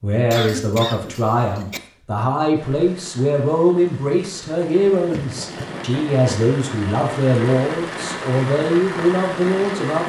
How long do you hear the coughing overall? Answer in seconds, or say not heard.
3 s.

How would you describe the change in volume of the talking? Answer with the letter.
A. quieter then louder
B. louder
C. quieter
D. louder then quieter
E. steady
E.